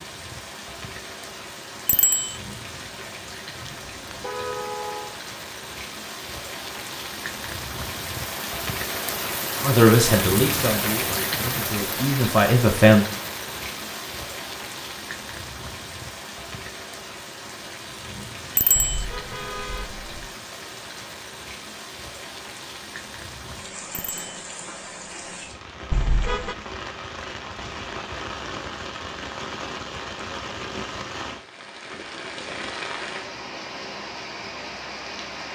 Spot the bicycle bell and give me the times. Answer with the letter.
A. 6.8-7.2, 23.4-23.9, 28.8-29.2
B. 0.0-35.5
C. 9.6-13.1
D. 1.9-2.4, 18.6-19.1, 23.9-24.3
D.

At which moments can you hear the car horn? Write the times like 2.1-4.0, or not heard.
3.6-5.2, 18.8-20.2, 25.9-26.6.